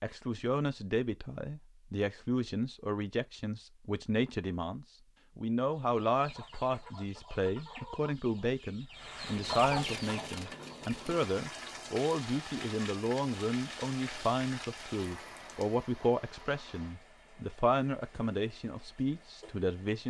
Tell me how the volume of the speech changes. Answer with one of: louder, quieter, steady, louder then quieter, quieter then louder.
steady.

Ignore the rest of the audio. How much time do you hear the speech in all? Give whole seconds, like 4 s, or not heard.
20 s.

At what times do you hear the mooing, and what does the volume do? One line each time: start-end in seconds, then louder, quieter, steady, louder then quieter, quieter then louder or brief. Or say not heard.
not heard.